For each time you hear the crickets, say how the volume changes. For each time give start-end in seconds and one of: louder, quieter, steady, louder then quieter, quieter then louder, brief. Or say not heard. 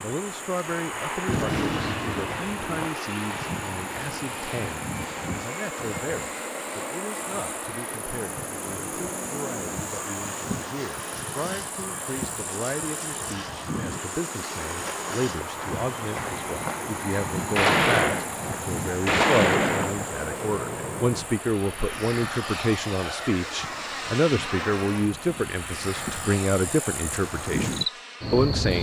0.0-28.7 steady.